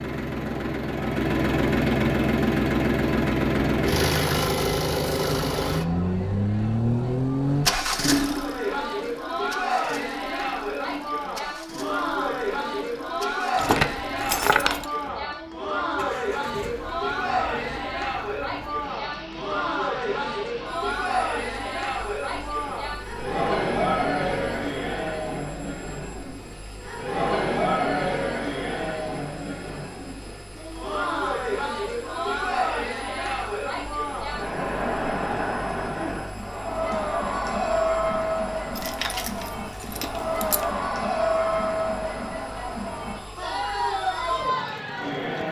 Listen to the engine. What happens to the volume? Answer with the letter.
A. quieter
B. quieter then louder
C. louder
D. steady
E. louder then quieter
A.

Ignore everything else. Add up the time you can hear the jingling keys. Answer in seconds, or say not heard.
3 s.